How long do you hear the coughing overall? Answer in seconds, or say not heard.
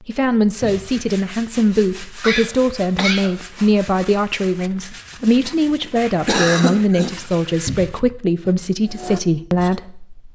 3 s.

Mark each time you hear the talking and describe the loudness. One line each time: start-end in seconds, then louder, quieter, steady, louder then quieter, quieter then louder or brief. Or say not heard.
0.0-10.2 steady.